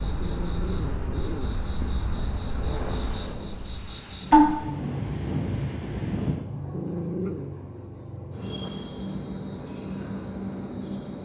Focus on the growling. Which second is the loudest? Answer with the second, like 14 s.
7 s.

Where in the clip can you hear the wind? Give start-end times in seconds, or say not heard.
0.0-6.3.